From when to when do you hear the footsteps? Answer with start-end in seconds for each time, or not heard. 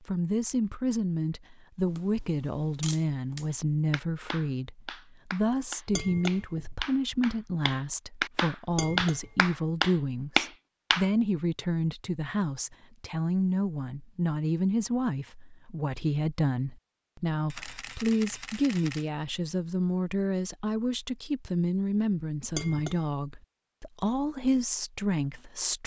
not heard.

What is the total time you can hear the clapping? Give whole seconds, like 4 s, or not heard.
7 s.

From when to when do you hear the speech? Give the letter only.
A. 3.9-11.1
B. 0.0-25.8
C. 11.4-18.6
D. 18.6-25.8
B.